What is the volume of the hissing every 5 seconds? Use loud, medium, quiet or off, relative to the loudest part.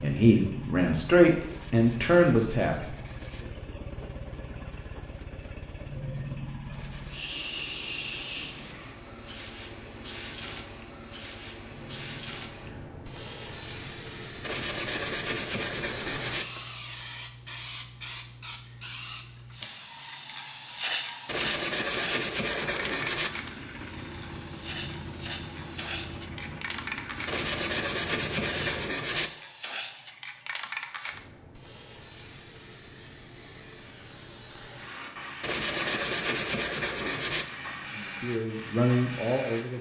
off, loud, loud, loud, loud, loud, medium, loud.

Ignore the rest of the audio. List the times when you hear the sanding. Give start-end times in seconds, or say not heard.
1.4-3.5, 6.7-8.8, 14.4-16.4, 21.2-23.3, 27.2-29.3, 35.4-37.5.